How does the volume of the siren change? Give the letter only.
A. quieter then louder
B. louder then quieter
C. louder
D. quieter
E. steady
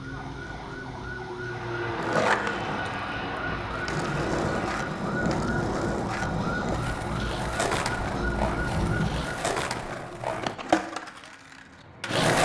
E.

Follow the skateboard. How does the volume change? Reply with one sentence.
The loudness of the skateboard stays about the same.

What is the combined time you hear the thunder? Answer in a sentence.
The thunder can be heard for 4 seconds in total.